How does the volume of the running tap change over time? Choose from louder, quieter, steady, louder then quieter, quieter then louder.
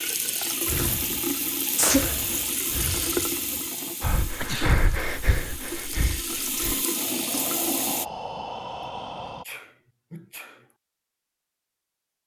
quieter then louder.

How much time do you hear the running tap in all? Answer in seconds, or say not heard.
8 s.